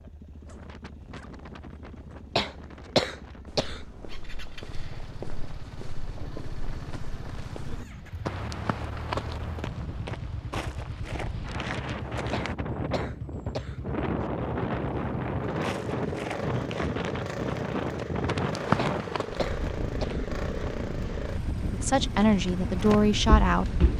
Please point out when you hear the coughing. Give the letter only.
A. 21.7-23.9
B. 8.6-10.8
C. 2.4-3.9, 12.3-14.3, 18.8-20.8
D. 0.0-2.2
C.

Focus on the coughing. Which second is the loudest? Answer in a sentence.
The loudest moment of the coughing is at 3 seconds.